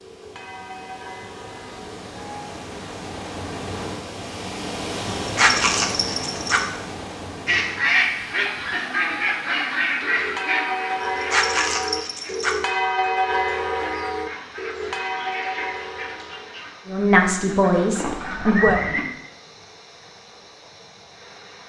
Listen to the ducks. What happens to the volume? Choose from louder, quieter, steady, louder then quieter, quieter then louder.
quieter then louder.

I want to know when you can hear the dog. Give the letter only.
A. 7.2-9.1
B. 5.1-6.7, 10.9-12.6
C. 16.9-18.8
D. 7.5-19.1
B.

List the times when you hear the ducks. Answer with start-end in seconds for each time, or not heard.
7.5-19.1.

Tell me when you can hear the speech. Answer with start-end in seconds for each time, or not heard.
16.9-18.8.